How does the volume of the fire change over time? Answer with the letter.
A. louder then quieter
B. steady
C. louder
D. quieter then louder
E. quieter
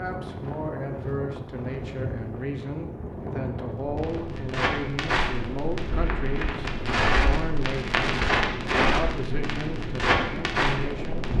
D.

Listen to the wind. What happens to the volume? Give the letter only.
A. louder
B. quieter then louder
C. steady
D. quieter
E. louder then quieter
C.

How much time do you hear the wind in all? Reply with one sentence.
You can hear the wind for 11 seconds altogether.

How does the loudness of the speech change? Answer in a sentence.
The loudness of the speech stays about the same.